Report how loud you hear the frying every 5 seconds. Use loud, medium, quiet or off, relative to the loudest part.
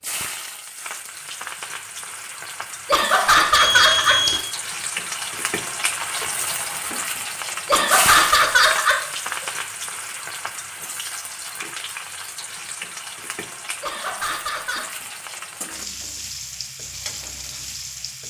medium, loud, medium, medium.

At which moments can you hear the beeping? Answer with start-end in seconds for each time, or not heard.
3.5-4.4.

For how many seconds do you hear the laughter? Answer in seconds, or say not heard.
4 s.